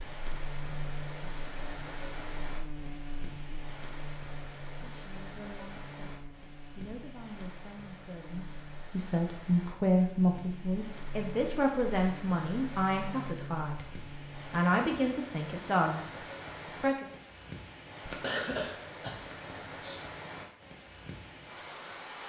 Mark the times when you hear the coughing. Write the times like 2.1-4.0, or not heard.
18.1-20.0.